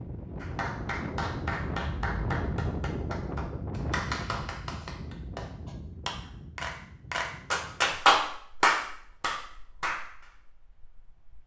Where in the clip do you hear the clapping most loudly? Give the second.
8 s.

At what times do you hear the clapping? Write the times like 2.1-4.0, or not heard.
0.4-10.3.